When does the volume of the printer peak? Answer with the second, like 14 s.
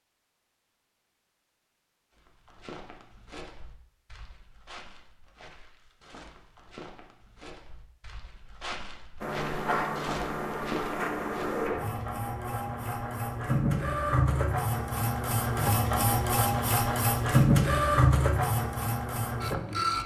18 s.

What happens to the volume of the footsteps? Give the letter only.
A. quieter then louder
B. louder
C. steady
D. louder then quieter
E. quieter
B.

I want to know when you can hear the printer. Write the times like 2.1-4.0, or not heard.
9.2-20.0.